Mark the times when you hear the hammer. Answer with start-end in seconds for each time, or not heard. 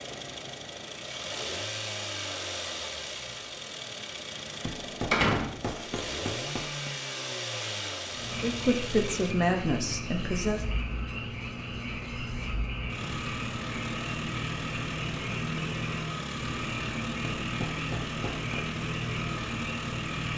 4.7-6.9, 17.4-18.8.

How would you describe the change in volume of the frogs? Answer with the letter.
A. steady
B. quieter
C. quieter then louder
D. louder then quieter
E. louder
A.